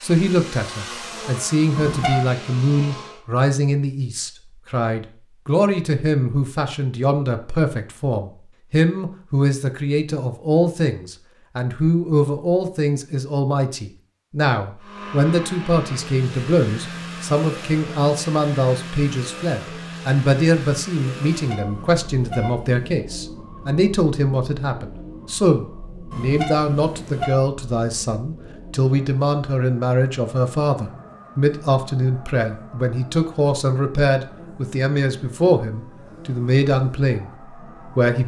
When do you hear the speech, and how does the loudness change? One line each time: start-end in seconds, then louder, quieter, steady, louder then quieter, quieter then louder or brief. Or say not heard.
0.0-38.2 steady.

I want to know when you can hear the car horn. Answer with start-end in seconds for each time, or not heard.
1.8-2.2, 21.3-23.0, 26.1-27.4.